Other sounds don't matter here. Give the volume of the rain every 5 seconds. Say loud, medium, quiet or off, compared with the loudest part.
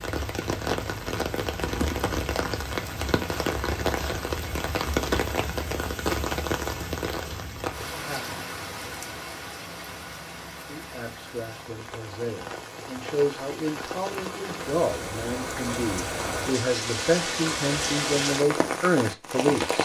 loud, loud, medium, loud.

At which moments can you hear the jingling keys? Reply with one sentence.
You can hear the jingling keys from 1.6 to 2.1 s.